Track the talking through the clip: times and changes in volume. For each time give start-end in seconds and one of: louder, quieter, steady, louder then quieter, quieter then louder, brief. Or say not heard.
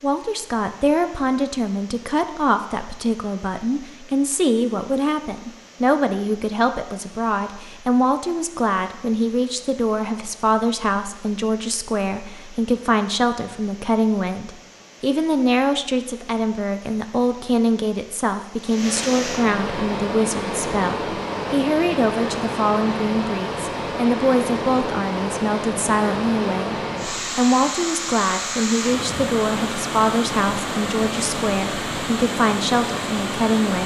0.0-33.8 steady.